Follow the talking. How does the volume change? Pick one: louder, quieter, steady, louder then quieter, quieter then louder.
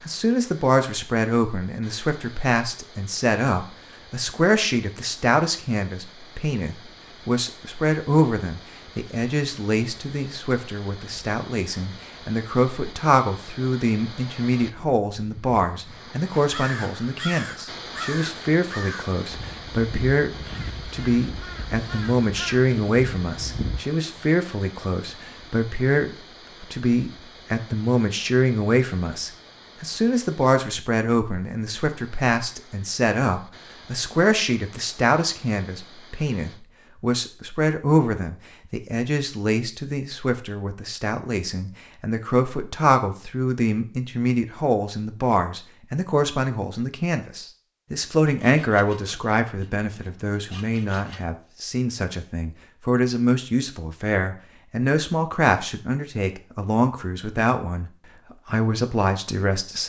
steady.